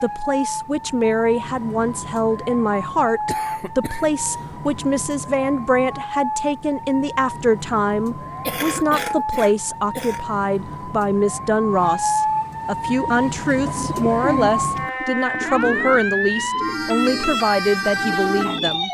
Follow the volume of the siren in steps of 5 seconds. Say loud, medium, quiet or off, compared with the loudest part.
medium, medium, loud, loud.